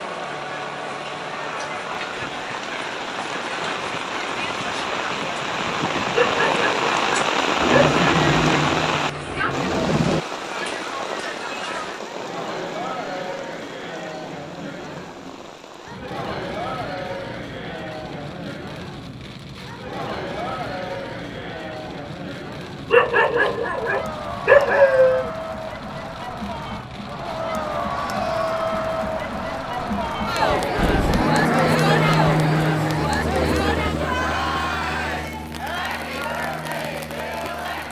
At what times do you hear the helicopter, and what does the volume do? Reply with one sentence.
You can hear the helicopter briefly from 7.6 to 10.2 s; and from 30.8 to 37.8 s, getting quieter.